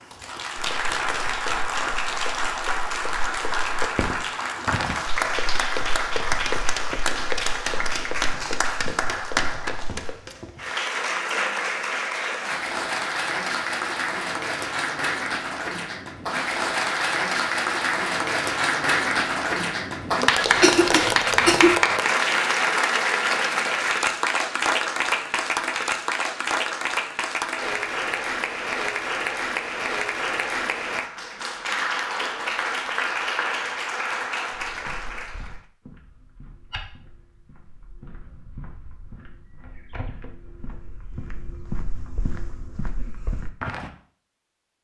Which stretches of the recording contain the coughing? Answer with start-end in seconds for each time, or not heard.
20.4-21.8.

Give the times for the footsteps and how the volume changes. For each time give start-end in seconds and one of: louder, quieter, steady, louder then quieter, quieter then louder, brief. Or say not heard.
0.6-10.2 louder then quieter
34.5-43.9 louder.